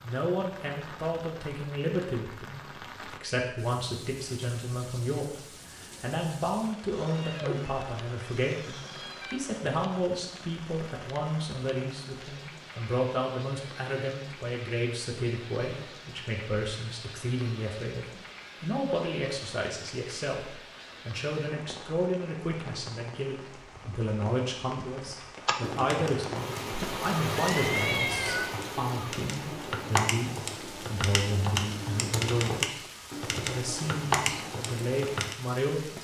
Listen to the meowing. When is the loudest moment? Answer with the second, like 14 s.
28 s.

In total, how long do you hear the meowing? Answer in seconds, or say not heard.
4 s.